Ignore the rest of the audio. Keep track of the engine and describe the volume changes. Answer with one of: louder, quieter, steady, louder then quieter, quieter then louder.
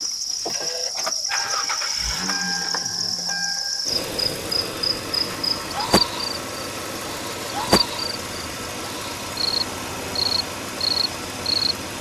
steady.